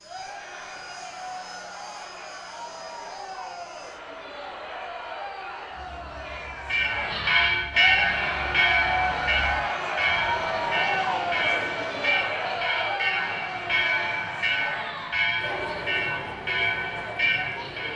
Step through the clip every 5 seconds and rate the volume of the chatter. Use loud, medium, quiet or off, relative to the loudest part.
medium, loud, loud, medium.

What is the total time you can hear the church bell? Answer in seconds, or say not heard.
11 s.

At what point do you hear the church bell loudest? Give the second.
8 s.